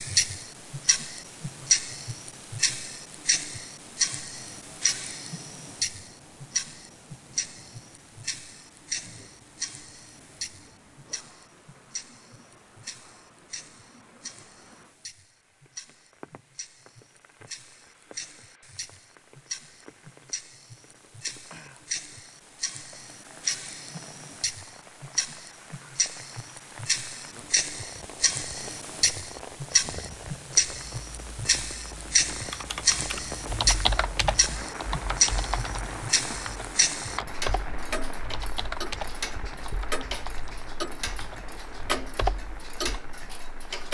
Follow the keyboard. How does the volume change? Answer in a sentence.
The volume of the keyboard goes down.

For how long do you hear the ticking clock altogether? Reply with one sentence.
The ticking clock can be heard for 44 seconds in total.